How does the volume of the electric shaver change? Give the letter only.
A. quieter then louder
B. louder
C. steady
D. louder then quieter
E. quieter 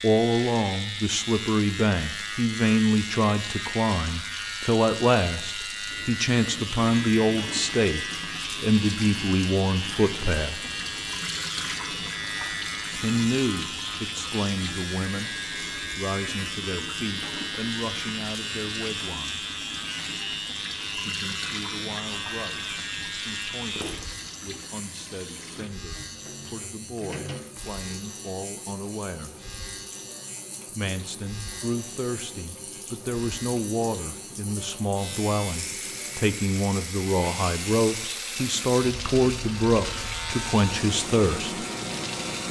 A.